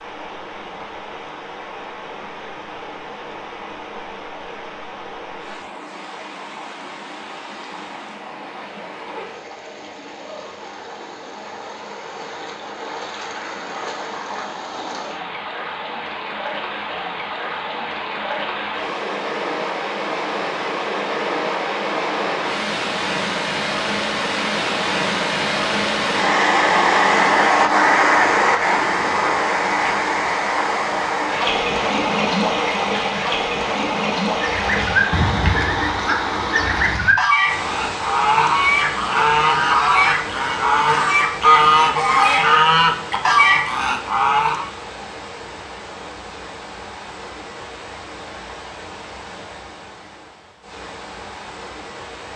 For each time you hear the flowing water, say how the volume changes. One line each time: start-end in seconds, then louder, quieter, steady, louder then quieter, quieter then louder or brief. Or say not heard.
0.0-52.3 louder then quieter.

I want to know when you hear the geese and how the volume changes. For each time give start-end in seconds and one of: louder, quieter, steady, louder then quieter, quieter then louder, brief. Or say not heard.
34.4-44.7 louder.